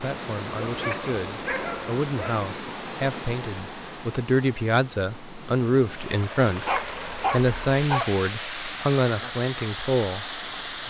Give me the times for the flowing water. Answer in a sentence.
The flowing water can be heard from 0.0 to 10.8 s.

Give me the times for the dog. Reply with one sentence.
The dog can be heard from 0.5 to 2.5 s and from 6.7 to 8.1 s.